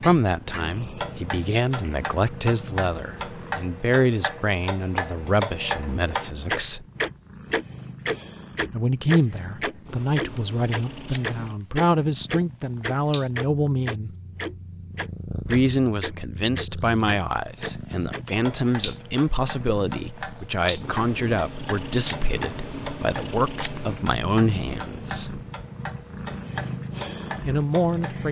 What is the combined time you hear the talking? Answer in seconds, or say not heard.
23 s.